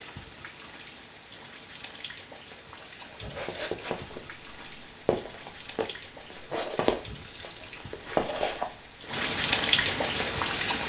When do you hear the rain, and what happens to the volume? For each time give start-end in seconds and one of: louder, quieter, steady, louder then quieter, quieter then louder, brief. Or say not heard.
0.0-10.8 louder.